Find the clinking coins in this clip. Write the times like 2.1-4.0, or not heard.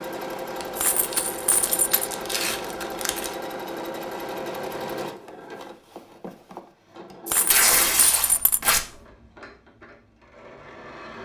0.8-2.0, 7.2-8.6.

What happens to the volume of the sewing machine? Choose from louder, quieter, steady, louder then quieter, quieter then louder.
quieter.